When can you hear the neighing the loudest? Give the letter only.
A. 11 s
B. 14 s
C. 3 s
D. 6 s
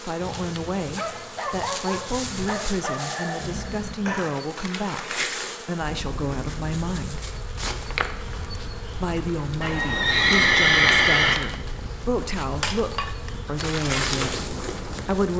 A.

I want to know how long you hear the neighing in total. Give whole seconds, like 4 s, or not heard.
4 s.